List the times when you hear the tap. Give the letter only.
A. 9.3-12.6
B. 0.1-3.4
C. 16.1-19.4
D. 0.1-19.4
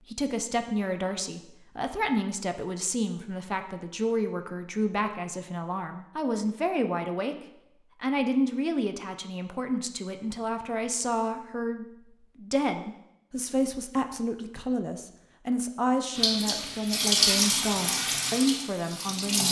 C.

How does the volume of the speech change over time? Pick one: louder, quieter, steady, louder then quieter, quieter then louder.
steady.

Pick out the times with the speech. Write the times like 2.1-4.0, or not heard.
0.1-19.4.